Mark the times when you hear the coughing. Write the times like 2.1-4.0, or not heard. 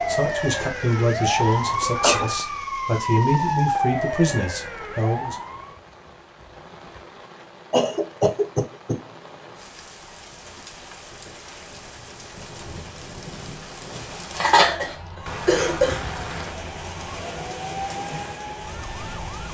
1.3-2.4, 7.7-9.0, 14.3-16.0.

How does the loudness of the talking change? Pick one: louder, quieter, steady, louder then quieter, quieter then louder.
steady.